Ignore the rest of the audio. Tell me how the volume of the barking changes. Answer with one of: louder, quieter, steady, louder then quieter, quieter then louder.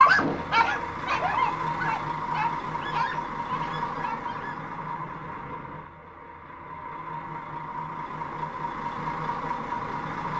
quieter.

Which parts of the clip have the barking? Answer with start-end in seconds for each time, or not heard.
0.0-4.6.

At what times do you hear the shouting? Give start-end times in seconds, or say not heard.
not heard.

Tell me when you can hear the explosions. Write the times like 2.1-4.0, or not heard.
0.1-0.7.